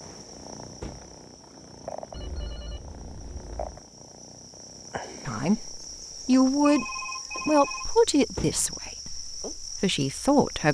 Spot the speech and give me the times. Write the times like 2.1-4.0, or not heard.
5.2-6.8, 7.5-10.7.